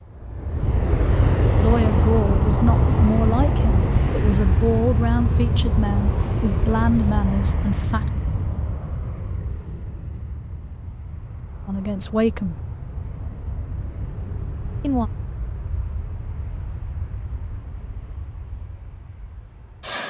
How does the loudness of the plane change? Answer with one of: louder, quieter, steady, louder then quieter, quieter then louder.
quieter.